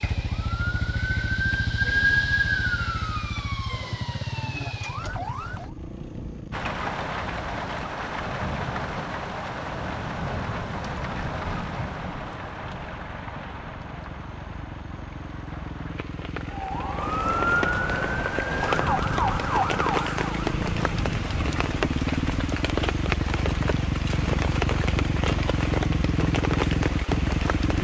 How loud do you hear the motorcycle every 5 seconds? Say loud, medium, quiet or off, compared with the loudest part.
medium, quiet, quiet, medium, loud, loud.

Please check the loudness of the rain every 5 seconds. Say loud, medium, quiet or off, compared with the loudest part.
off, loud, loud, loud, loud, loud.